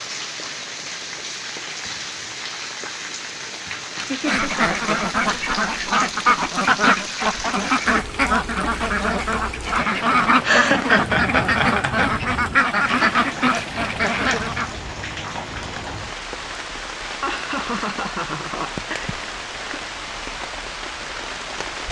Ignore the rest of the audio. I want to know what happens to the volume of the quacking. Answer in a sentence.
The loudness of the quacking stays about the same.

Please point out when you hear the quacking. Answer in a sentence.
The quacking can be heard from 4.0 to 14.8 s.